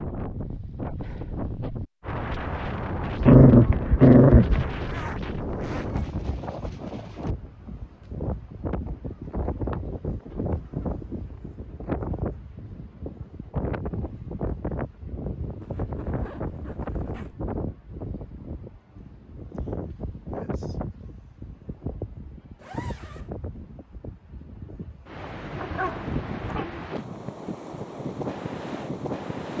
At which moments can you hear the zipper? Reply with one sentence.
You can hear the zipper from 4.8 to 6.1 s, from 15.6 to 17.4 s and from 22.6 to 23.3 s.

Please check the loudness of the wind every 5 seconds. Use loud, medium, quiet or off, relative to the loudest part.
loud, loud, loud, loud, medium, loud.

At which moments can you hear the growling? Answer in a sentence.
The growling can be heard from 3.2 to 4.7 s and from 25.6 to 27.2 s.